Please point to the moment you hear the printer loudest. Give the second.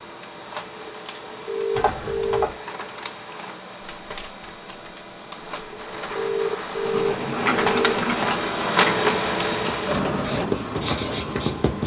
9 s.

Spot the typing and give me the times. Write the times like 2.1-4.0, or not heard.
1.8-2.5, 7.3-8.9.